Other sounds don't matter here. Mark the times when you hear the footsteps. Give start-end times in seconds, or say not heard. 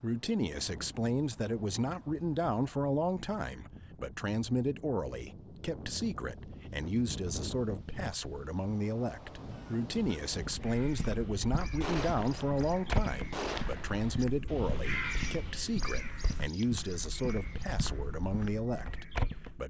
10.3-19.6.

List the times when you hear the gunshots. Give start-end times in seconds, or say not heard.
11.8-14.2.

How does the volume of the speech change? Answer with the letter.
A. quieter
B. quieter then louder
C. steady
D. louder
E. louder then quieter
C.